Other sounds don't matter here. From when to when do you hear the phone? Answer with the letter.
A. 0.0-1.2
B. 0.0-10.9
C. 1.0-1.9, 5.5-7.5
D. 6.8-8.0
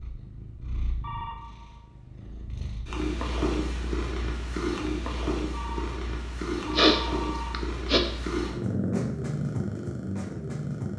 C.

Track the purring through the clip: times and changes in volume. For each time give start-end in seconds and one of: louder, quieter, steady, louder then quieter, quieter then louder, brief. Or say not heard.
0.0-10.9 louder.